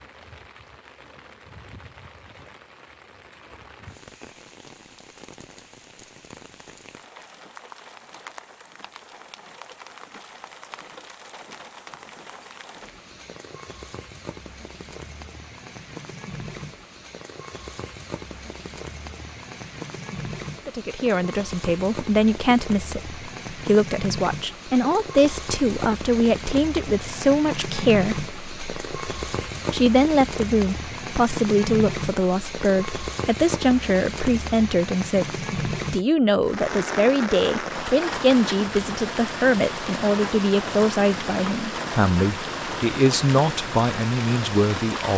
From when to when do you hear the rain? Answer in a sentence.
The rain can be heard from 0.0 to 45.1 s.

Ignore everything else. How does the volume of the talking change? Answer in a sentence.
The loudness of the talking stays about the same.